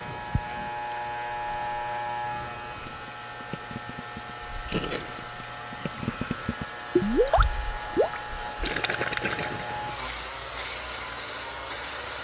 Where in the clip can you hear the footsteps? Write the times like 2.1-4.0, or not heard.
not heard.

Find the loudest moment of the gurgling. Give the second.
7 s.